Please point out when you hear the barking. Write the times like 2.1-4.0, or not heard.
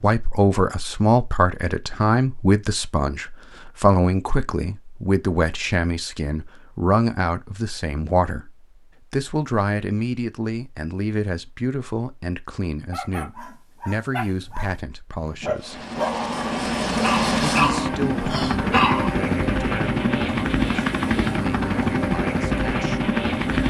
12.8-19.1.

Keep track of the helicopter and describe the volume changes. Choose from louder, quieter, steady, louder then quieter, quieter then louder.
steady.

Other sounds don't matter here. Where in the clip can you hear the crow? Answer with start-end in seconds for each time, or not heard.
not heard.